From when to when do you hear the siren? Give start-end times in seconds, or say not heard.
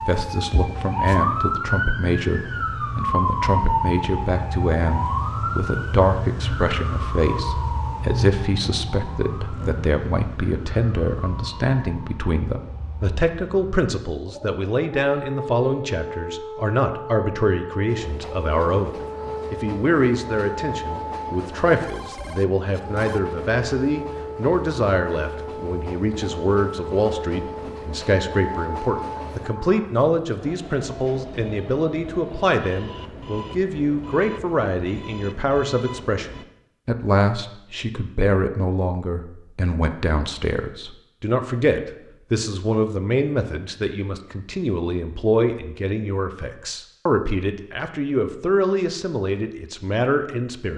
0.0-29.9.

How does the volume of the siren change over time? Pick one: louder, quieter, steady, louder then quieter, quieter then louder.
quieter.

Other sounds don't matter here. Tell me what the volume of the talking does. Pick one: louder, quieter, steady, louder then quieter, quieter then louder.
steady.